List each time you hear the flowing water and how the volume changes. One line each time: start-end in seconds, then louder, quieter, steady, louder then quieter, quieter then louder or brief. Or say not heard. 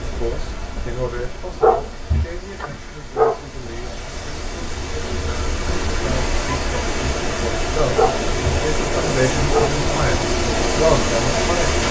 0.0-11.8 louder.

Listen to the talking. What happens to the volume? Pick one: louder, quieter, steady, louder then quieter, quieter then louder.
quieter then louder.